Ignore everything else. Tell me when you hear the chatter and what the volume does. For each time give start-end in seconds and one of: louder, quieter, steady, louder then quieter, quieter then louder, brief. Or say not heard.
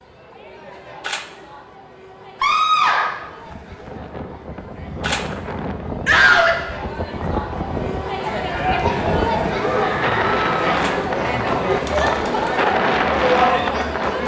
0.0-14.2 louder.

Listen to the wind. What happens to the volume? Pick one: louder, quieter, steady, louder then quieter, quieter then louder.
louder.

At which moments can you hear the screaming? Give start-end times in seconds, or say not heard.
2.4-3.1, 6.0-6.5, 9.6-10.6.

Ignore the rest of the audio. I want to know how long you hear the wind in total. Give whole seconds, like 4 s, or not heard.
11 s.